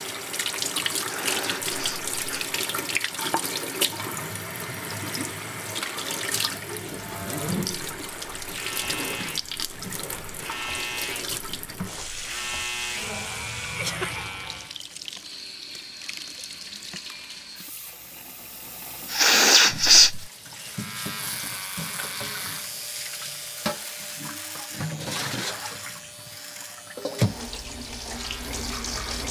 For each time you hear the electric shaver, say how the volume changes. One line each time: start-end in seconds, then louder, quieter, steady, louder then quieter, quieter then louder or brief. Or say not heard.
7.0-14.8 louder
20.6-29.2 quieter.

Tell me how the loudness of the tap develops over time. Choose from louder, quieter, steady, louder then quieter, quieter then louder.
quieter then louder.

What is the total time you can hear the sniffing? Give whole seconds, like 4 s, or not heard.
3 s.